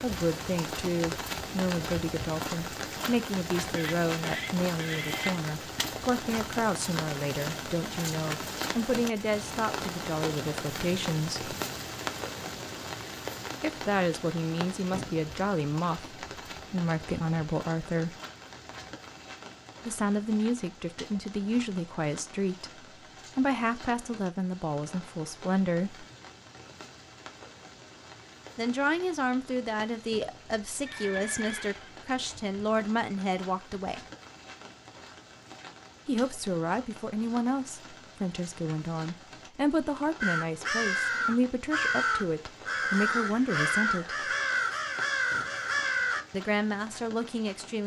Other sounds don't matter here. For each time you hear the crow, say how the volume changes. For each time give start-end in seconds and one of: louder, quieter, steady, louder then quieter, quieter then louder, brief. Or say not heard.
40.2-46.2 steady.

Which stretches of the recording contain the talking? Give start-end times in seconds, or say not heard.
0.0-11.5, 13.6-18.2, 19.9-26.1, 28.6-34.0, 36.0-44.2, 46.3-47.8.